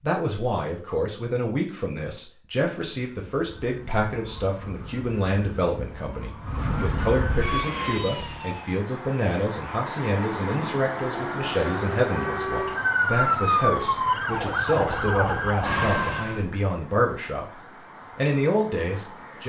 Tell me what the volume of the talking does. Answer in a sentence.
The volume of the talking stays about the same.